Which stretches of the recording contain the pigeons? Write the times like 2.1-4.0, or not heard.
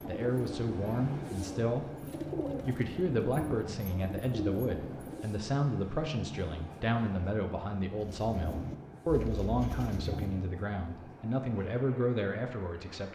0.0-5.3, 8.0-10.5.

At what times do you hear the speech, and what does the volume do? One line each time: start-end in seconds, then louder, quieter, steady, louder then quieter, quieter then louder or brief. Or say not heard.
0.1-1.9 brief
2.6-13.0 steady.